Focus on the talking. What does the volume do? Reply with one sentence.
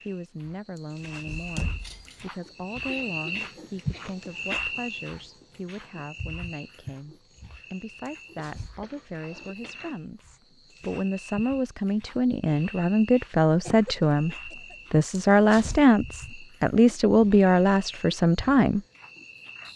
The volume of the talking goes up.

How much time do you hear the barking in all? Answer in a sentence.
The barking can't be heard in this clip.